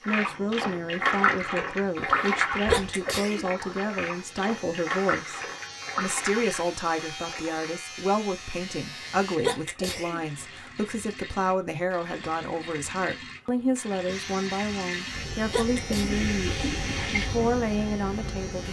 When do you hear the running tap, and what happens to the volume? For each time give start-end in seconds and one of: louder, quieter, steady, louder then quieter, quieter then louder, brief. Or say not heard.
0.0-18.6 quieter then louder.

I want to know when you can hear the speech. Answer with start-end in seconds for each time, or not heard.
0.1-18.6.